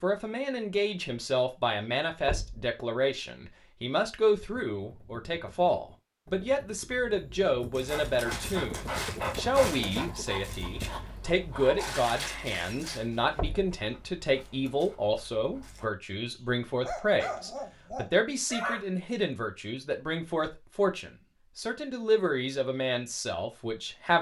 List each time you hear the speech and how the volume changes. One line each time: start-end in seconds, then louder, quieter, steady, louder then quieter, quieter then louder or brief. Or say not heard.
0.0-24.1 steady.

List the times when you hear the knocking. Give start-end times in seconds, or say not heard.
2.2-2.7, 13.3-13.8.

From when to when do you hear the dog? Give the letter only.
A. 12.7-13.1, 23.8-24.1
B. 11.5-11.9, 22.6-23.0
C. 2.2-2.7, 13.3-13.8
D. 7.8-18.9
D.